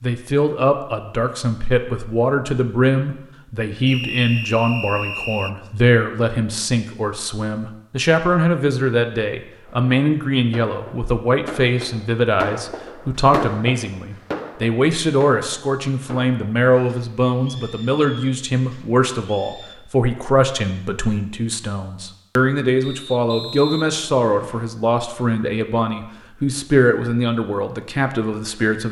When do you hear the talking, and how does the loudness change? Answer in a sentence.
The talking can be heard from 0.0 to 28.8 s, at a steady volume.